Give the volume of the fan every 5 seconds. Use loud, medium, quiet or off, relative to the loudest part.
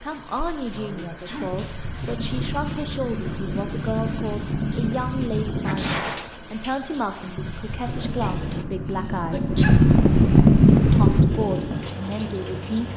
quiet, medium, loud.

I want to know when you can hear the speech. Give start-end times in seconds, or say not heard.
0.0-9.6, 10.8-12.9.